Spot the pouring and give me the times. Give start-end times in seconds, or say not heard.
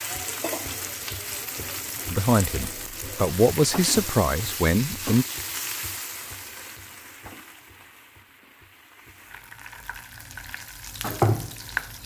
not heard.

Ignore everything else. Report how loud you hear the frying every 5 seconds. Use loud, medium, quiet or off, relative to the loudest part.
medium, medium, loud.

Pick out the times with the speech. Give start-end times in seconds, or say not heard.
2.1-5.2.